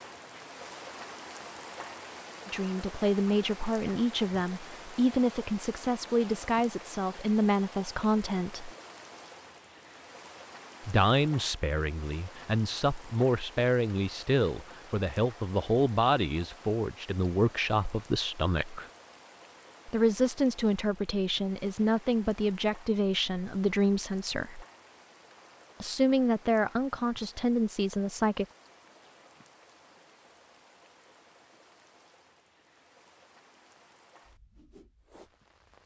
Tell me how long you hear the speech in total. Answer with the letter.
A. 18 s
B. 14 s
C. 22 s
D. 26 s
C.